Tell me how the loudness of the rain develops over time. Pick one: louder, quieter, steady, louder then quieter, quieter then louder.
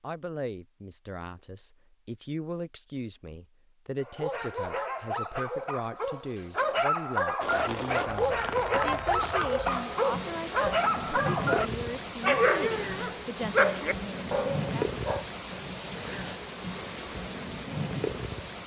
steady.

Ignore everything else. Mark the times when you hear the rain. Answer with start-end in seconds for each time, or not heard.
7.4-18.6.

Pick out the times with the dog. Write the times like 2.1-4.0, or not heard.
4.0-15.2.